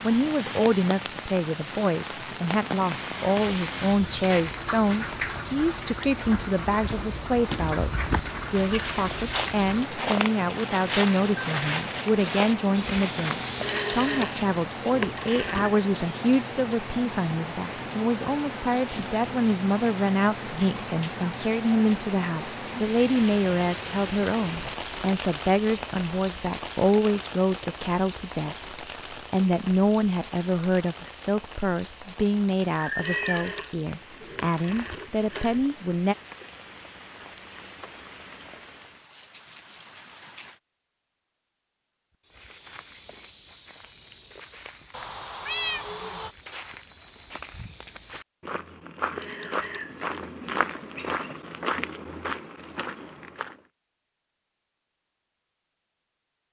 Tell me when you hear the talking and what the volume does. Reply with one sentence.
The talking can be heard from 0.0 to 36.1 s, at a steady volume.